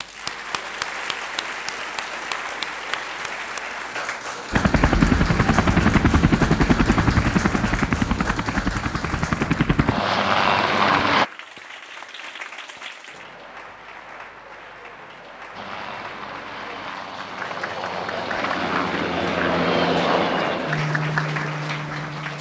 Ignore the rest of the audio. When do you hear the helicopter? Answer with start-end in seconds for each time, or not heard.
4.5-11.2, 15.6-22.3.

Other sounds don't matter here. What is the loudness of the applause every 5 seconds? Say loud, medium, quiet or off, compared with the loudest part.
loud, loud, medium, medium, loud.